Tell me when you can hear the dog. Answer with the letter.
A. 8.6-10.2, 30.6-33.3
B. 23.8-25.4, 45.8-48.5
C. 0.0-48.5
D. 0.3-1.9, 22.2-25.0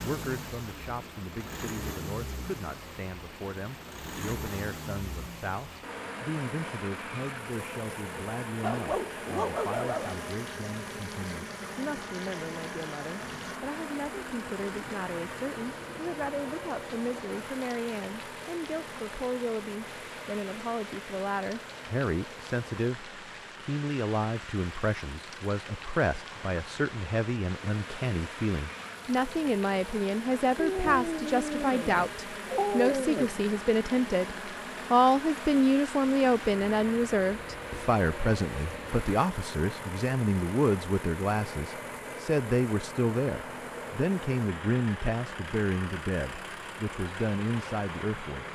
A.